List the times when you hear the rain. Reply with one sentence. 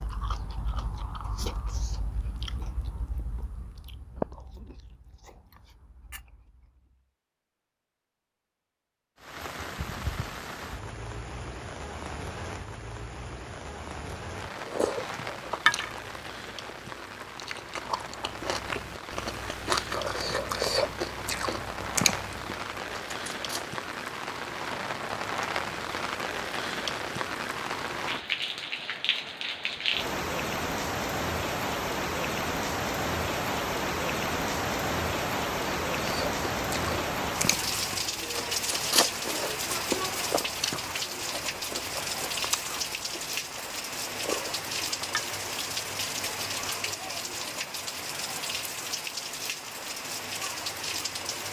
The rain can be heard from 9.2 to 51.4 s.